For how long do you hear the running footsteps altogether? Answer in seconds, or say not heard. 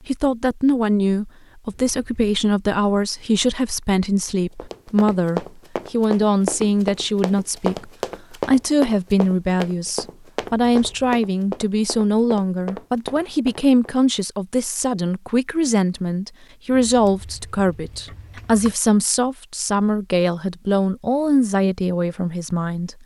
9 s.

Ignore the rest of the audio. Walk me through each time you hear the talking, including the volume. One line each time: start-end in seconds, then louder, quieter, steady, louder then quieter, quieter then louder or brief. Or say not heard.
0.1-22.9 steady.